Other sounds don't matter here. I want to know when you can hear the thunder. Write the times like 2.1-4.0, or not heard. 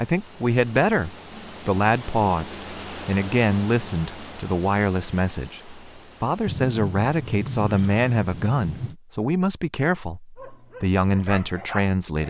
6.5-8.9.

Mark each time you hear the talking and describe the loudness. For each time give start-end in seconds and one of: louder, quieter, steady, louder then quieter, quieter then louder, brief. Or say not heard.
0.0-12.2 steady.